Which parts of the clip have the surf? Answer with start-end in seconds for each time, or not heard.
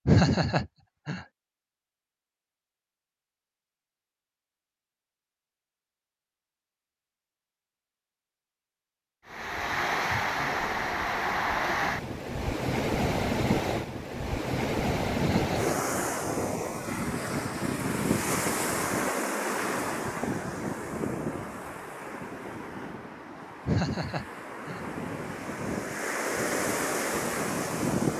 9.2-28.1.